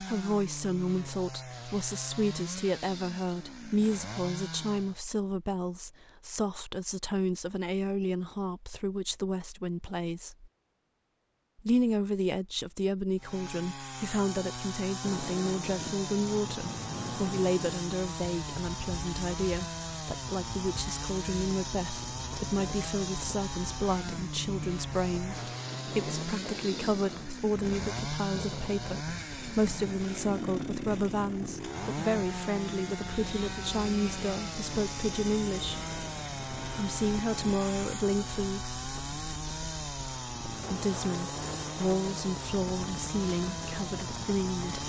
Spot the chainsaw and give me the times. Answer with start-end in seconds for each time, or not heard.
0.0-5.0, 13.2-44.8.